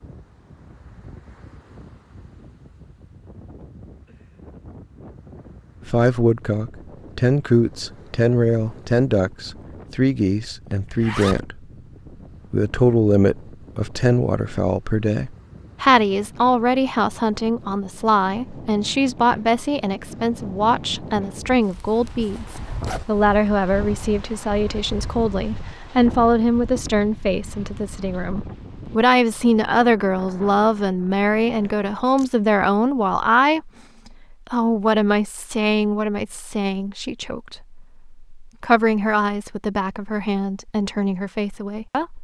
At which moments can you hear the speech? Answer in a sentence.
The speech can be heard from 5.8 to 11.6 s, from 12.5 to 33.7 s and from 34.3 to 42.1 s.